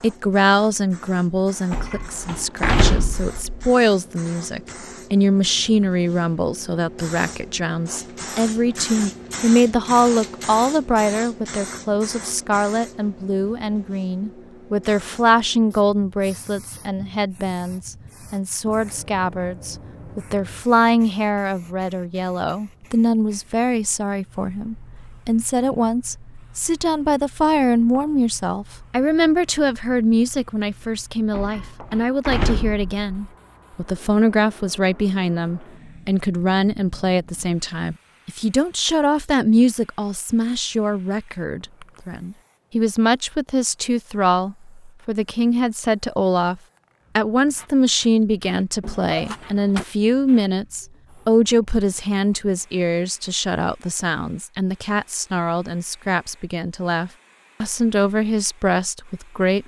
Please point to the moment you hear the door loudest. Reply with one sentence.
The loudest moment of the door is at 3 seconds.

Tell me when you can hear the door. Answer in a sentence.
You can hear the door from 1.7 to 3.6 s, from 31.3 to 33.0 s and from 48.8 to 49.9 s.